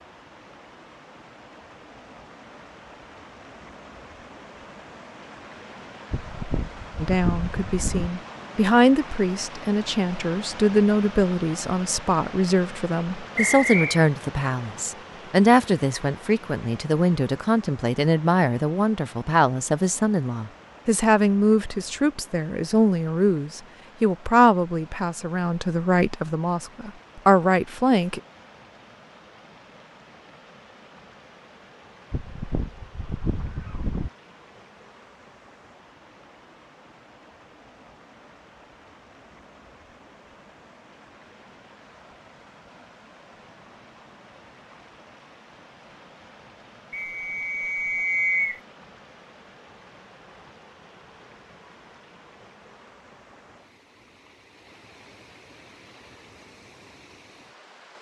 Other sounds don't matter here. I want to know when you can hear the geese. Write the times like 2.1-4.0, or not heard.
6.1-8.1, 32.1-34.1.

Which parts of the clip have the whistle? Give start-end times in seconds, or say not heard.
13.3-14.0, 46.9-48.6.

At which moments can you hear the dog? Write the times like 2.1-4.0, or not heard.
not heard.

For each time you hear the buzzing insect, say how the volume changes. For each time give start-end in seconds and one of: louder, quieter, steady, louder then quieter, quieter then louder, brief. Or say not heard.
not heard.